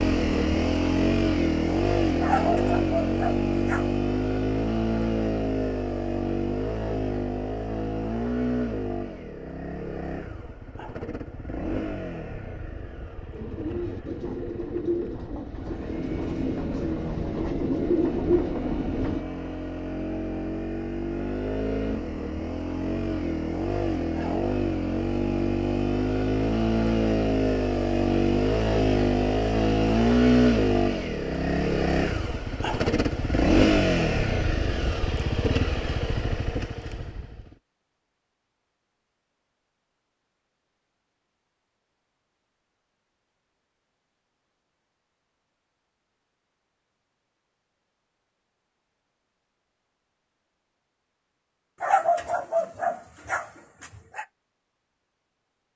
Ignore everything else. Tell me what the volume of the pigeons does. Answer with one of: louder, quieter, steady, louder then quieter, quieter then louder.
louder.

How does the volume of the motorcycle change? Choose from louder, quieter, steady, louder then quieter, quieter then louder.
quieter then louder.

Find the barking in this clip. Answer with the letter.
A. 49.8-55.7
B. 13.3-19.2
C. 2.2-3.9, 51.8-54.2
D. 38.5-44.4
C.